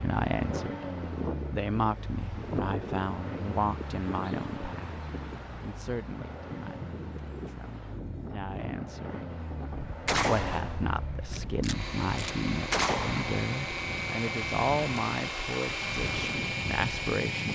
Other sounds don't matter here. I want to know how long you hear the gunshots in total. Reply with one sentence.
The gunshots can be heard for 3 seconds in total.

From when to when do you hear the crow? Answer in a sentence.
You can't hear the crow here.